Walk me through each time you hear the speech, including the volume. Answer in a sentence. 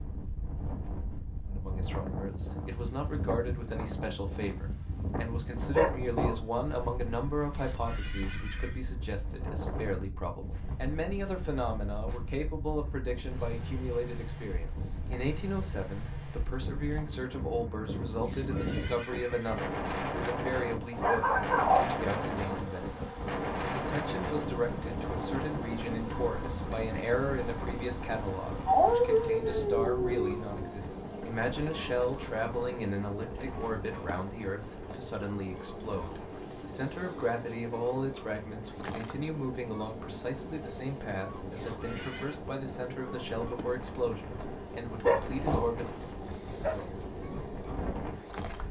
The speech can be heard from 1.5 to 45.9 s, at a steady volume.